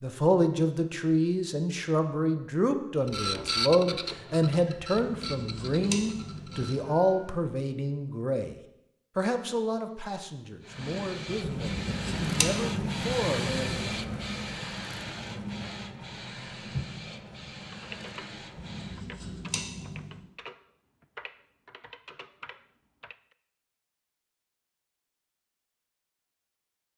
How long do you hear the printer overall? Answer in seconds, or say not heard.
13 s.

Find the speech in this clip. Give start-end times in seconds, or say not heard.
0.0-8.6, 9.2-13.8.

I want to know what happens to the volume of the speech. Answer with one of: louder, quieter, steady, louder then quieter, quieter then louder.
quieter.